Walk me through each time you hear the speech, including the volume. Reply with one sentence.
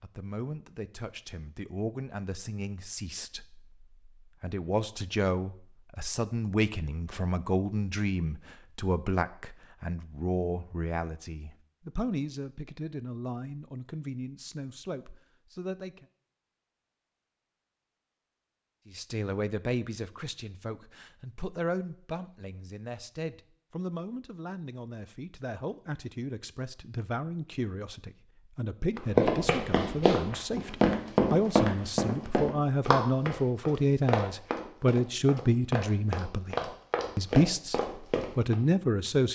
The speech can be heard from 0.0 to 16.1 s, getting louder then quieter; and from 18.9 to 39.3 s, getting louder.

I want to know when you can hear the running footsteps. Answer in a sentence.
The running footsteps can be heard from 28.9 to 38.5 s.